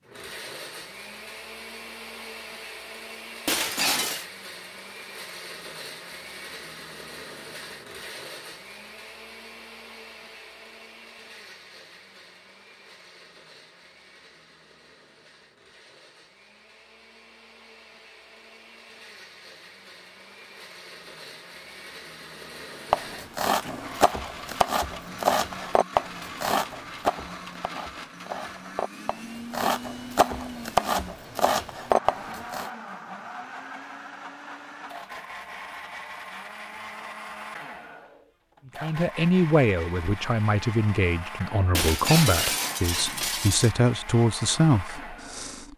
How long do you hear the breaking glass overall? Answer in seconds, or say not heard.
3 s.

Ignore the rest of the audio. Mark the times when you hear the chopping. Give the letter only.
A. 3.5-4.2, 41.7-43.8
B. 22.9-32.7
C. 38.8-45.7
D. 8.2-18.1
B.